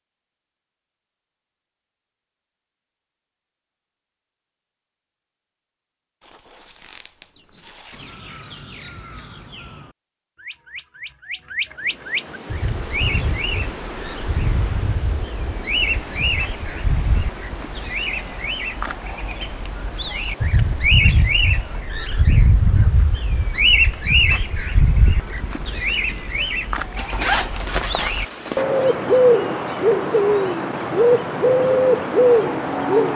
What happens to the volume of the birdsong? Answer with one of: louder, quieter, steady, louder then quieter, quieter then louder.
louder.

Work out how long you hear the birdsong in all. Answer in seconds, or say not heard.
26 s.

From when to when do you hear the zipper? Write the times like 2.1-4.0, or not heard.
6.2-8.2, 26.9-28.6.